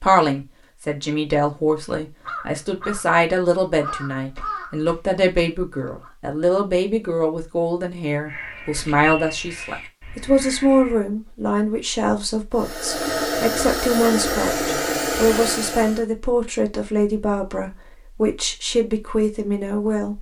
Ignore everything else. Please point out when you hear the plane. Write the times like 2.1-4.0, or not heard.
12.6-16.1.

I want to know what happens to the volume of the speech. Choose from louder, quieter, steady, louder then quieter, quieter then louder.
steady.